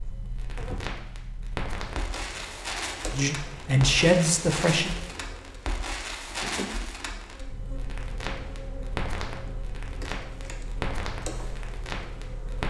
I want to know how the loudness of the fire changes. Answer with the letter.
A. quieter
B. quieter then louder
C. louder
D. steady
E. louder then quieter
D.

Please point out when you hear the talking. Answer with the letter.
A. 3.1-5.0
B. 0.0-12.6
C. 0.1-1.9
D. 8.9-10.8
A.